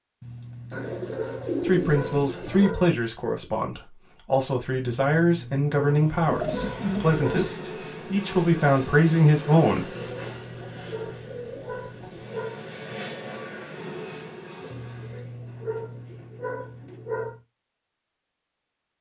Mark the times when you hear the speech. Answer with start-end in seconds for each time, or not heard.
1.6-10.1.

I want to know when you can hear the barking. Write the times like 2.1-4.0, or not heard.
0.2-3.0, 5.0-7.5, 9.9-12.7, 14.7-17.4.